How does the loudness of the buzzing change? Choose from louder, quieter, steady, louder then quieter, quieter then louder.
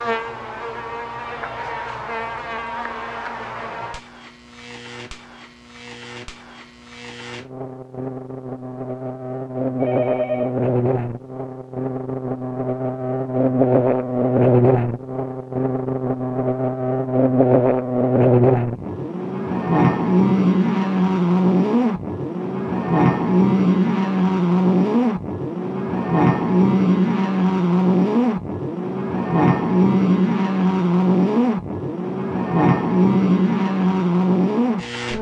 louder.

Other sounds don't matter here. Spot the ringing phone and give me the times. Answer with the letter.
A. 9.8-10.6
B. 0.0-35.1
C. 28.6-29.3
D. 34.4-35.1
A.